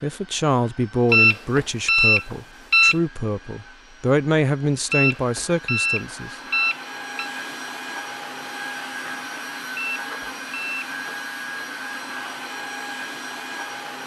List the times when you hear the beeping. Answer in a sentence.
The beeping can be heard from 1.1 to 3.0 s, from 4.9 to 7.3 s and from 9.8 to 10.9 s.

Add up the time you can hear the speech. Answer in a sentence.
The speech can be heard for 6 seconds in total.